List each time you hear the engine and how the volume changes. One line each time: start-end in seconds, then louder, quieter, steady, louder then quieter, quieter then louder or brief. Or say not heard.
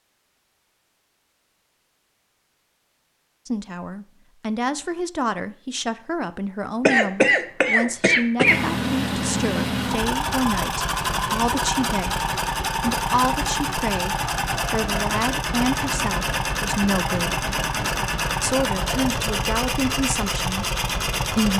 8.4-21.5 steady.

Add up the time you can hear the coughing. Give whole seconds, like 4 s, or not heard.
2 s.